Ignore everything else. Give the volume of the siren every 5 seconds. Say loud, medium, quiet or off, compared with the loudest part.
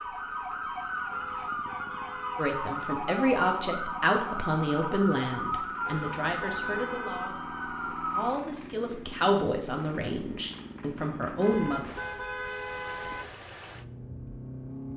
loud, loud, off.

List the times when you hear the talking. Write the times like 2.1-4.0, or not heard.
2.4-11.8.